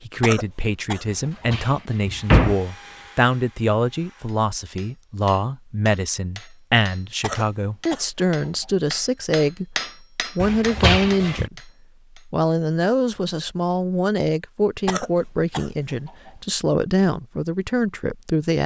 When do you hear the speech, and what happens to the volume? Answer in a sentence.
You can hear the speech from 0.0 to 18.6 s, at a steady volume.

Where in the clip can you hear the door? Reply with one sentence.
The door can be heard from 1.5 to 2.6 s and from 10.3 to 11.5 s.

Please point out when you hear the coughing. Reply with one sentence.
The coughing can be heard from 0.2 to 1.6 s, from 7.2 to 8.8 s and from 14.8 to 16.4 s.